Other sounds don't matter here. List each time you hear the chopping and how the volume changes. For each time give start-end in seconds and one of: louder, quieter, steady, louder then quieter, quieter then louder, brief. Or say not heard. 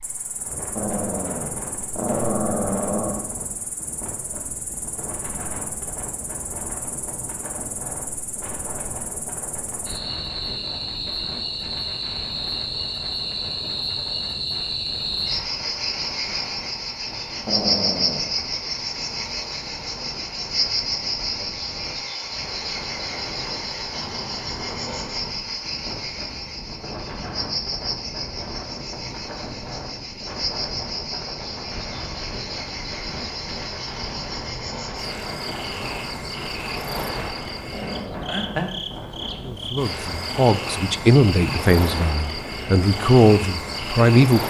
not heard.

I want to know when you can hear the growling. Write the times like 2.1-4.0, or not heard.
0.8-3.2, 17.4-18.4, 37.7-38.4.